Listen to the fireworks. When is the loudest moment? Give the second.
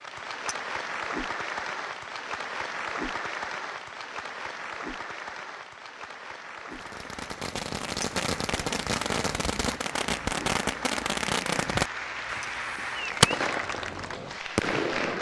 13 s.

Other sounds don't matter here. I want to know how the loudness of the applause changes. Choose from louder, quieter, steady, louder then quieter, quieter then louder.
quieter then louder.